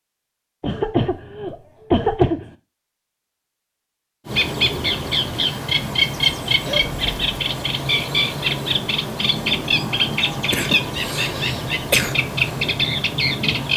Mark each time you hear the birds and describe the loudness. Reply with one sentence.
You can hear the birds from 4.2 to 13.7 s, at a steady volume.